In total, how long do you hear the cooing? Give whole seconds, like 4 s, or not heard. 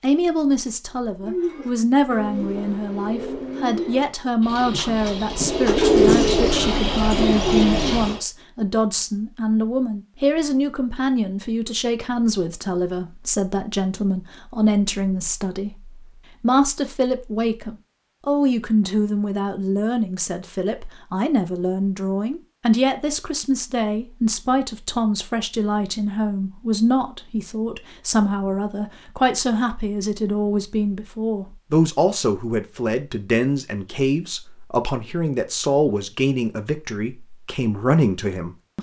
7 s.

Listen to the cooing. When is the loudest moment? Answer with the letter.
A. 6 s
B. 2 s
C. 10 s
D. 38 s
A.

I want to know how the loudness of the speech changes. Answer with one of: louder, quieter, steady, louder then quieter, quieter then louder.
steady.